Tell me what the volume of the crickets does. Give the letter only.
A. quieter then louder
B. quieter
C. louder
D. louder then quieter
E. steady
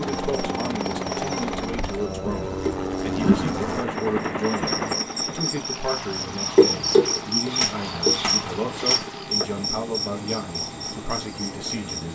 D.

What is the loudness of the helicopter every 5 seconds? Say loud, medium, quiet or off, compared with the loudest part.
loud, medium, medium.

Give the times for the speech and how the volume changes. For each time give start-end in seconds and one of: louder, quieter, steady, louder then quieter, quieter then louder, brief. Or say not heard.
0.0-12.0 steady.